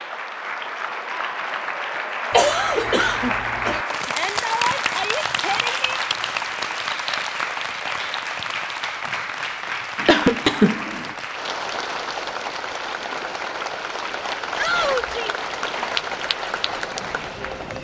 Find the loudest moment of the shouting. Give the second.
15 s.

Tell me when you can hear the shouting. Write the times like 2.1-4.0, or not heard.
4.0-6.0, 14.6-15.3.